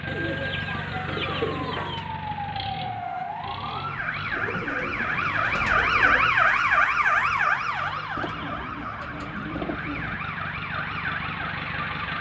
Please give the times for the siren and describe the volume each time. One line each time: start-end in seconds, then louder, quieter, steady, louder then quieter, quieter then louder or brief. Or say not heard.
0.1-12.1 louder then quieter.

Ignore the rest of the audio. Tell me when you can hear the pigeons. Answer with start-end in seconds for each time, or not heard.
0.1-2.1, 4.3-6.3, 8.2-10.2.